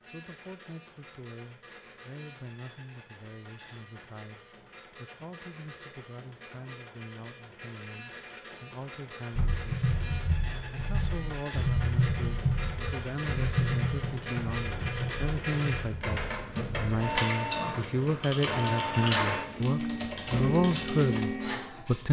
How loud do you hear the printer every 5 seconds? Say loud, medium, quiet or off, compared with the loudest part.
quiet, quiet, medium, loud, loud.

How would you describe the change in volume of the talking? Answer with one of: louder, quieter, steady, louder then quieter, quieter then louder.
louder.